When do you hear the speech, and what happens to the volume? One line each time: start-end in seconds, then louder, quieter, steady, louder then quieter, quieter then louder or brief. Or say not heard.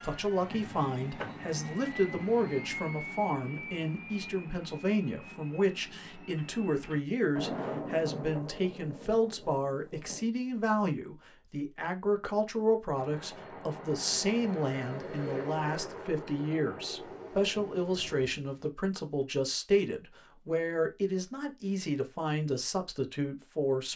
0.0-23.9 steady.